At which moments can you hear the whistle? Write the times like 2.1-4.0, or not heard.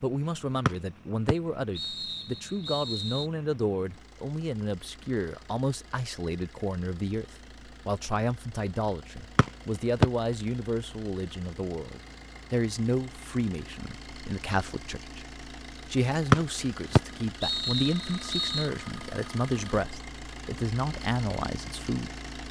0.7-3.2, 9.3-10.1, 16.3-18.7.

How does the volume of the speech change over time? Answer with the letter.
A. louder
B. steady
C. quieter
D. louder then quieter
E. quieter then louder
B.